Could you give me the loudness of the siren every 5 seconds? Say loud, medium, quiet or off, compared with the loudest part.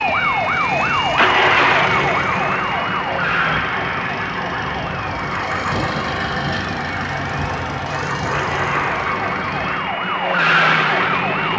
loud, medium, loud.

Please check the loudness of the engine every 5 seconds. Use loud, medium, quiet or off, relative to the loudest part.
loud, loud, off.